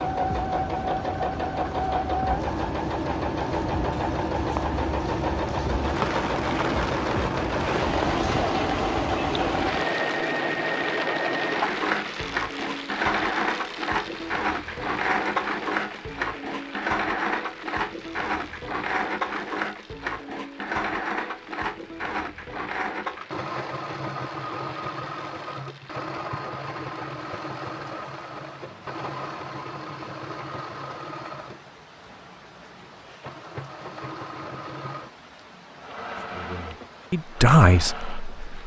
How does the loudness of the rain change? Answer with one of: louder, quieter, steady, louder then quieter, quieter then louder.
quieter.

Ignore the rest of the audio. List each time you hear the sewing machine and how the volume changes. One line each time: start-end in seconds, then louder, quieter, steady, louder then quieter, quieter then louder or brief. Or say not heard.
0.0-38.5 quieter.